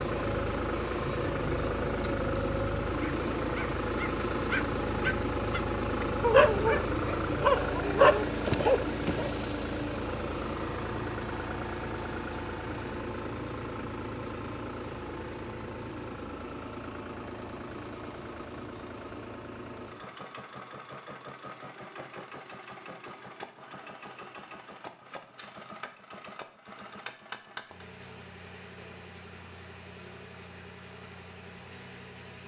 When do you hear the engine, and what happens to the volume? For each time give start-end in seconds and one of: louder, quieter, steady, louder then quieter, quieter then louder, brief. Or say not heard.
0.0-32.4 quieter.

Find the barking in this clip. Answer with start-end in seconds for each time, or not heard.
3.0-9.3.